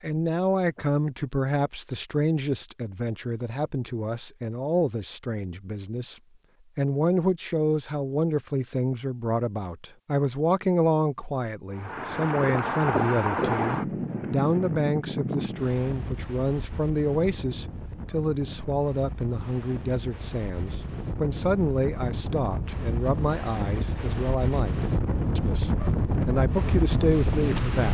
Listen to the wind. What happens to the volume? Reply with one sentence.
The loudness of the wind goes down, then up.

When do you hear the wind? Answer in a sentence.
You can hear the wind from 11.7 to 27.8 s.